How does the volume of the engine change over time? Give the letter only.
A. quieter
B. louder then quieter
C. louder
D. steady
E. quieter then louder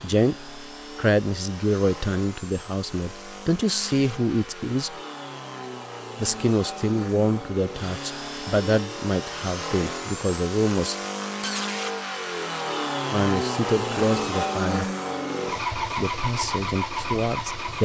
C.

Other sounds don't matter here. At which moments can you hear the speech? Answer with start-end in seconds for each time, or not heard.
0.0-5.0, 6.2-10.9, 13.1-14.8, 15.9-17.8.